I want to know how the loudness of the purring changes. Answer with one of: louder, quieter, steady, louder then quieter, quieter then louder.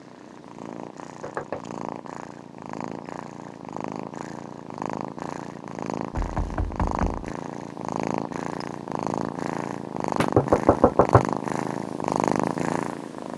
louder.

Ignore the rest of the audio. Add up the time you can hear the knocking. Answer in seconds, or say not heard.
3 s.